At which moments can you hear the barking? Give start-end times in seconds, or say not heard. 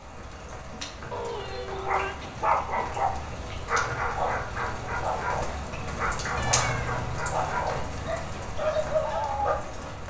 1.8-9.6.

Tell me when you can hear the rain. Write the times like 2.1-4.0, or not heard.
0.0-10.0.